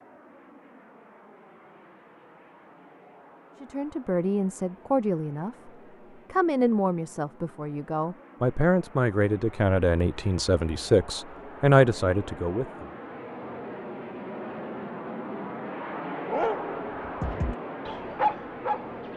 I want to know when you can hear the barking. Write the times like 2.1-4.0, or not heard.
16.2-19.1.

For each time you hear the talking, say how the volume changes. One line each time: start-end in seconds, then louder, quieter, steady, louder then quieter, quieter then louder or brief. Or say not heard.
3.6-5.7 brief
6.3-12.8 louder.